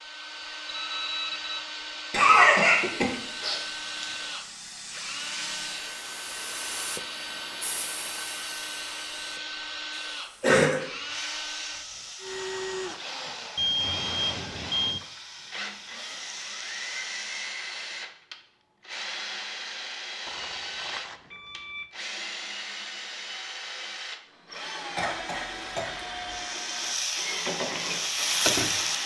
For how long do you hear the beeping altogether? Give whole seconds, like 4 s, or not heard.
4 s.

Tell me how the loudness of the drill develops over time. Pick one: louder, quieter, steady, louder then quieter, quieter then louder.
steady.